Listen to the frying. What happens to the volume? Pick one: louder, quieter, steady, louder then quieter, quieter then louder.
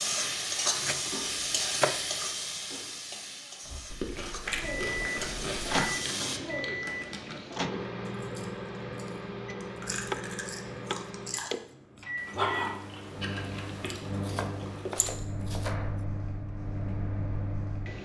quieter then louder.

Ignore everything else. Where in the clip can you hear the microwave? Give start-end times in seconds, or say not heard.
4.4-18.0.